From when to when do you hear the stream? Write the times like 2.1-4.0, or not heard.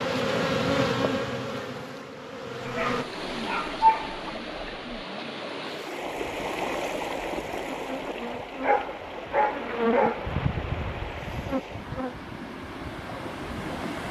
2.8-14.0.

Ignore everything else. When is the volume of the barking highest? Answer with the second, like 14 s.
4 s.